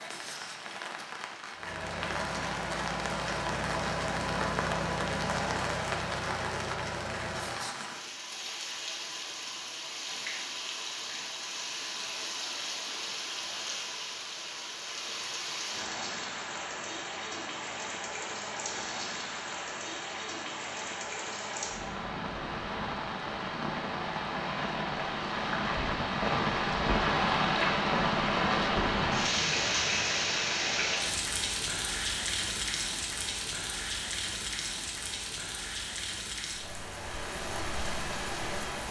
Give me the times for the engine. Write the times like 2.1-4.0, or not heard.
1.5-7.6.